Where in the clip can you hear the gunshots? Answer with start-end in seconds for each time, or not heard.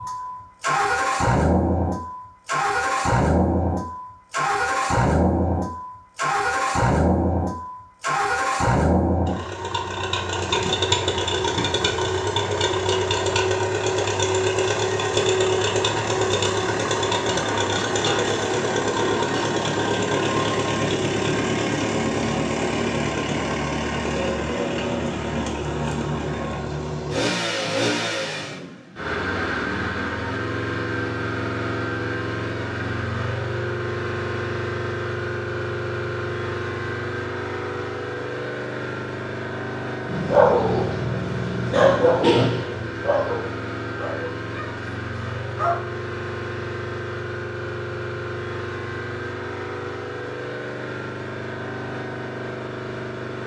not heard.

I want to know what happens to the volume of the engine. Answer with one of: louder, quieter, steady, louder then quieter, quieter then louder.
quieter.